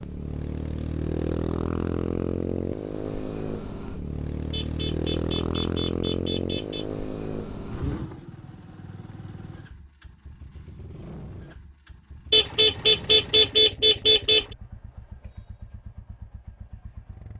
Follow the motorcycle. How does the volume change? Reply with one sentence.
The volume of the motorcycle goes down.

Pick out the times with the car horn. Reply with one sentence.
You can hear the car horn from 4.5 to 6.8 s and from 12.3 to 14.4 s.